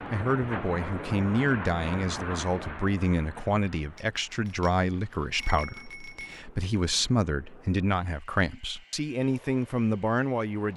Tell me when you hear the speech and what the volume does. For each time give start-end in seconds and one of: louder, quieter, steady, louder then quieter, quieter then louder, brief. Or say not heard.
0.1-10.7 steady.